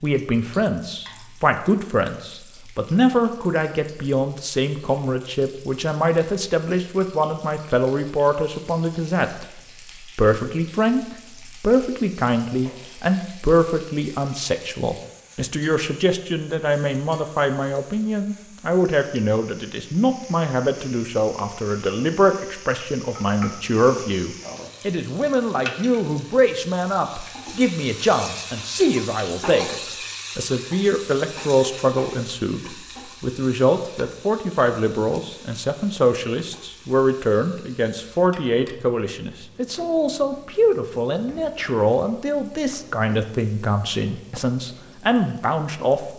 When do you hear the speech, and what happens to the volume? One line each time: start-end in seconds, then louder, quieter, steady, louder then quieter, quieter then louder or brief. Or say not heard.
0.0-46.1 steady.